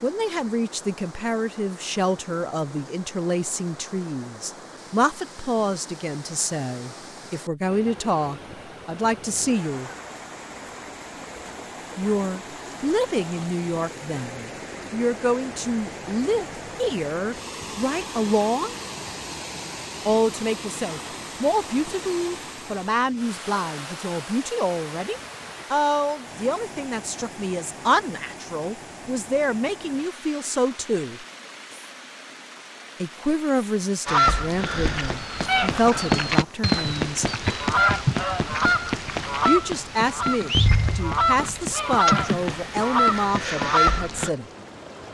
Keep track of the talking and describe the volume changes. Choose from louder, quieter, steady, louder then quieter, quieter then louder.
steady.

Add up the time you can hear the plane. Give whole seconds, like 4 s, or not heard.
not heard.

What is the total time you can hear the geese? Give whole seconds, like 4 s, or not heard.
10 s.